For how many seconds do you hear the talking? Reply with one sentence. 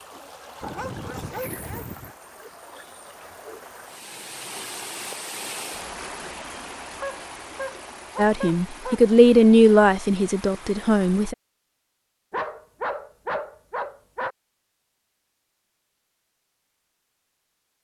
You can hear the talking for 3 seconds altogether.